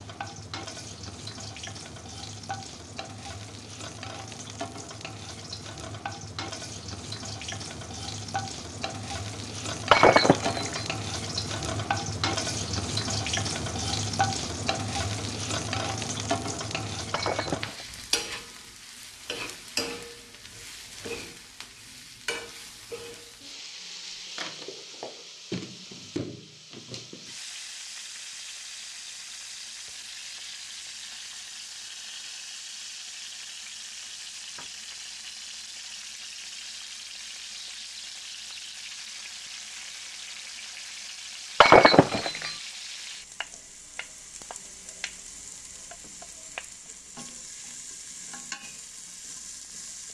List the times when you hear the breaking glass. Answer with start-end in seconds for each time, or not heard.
9.9-10.9, 17.1-18.1, 41.6-42.5.